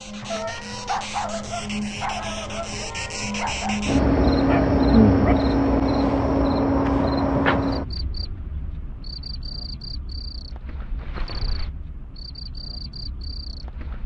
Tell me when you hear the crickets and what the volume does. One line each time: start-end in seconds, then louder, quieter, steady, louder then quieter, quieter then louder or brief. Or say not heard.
0.0-14.0 louder then quieter.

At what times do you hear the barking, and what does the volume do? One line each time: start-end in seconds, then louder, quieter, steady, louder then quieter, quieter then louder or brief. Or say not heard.
0.3-5.3 quieter then louder.